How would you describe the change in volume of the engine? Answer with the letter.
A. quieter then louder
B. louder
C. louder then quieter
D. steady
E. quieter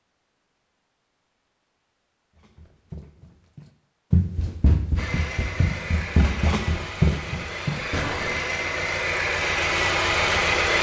B.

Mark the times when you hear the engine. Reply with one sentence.
You can hear the engine from 5.0 to 10.7 s.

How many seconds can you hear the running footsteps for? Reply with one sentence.
You can hear the running footsteps for 6 seconds altogether.